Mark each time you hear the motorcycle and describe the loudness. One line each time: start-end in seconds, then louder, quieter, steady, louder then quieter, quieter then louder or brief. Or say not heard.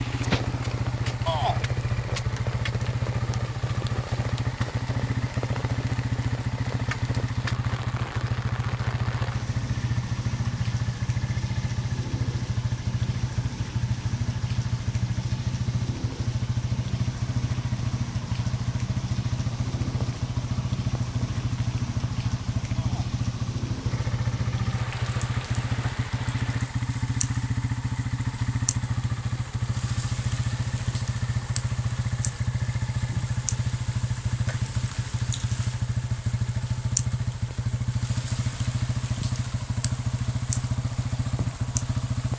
0.0-42.3 steady.